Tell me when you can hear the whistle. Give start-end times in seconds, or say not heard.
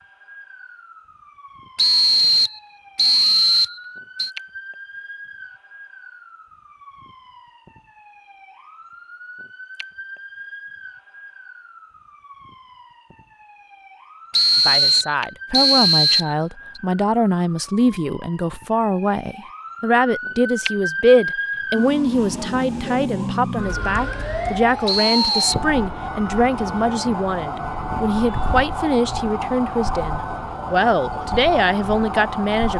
1.8-4.3, 14.3-16.8, 24.9-25.6.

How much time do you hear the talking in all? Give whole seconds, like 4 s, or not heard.
18 s.